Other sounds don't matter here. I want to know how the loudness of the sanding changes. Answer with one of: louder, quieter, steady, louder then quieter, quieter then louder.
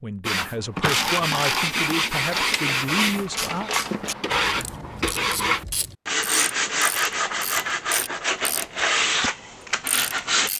steady.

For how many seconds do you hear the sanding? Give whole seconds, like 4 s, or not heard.
10 s.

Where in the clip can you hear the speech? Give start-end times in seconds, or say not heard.
0.0-3.7.